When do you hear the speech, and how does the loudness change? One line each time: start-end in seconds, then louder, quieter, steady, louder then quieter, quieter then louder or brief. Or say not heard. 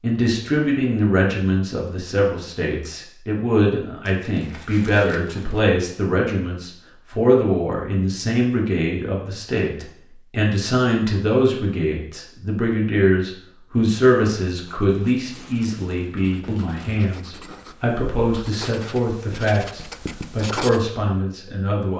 0.0-21.9 steady.